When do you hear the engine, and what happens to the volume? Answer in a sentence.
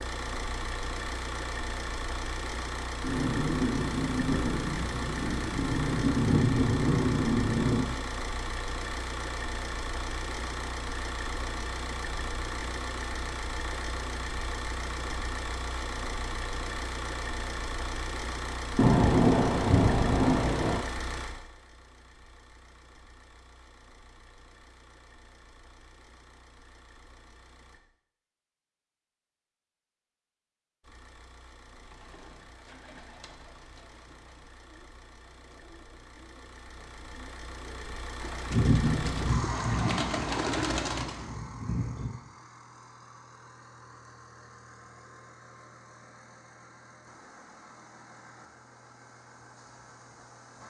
The engine can be heard from 0.0 to 27.8 s, getting quieter; and from 30.8 to 50.6 s, getting louder then quieter.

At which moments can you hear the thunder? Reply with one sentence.
You can hear the thunder from 3.0 to 7.8 s, from 18.8 to 20.8 s and from 38.5 to 42.1 s.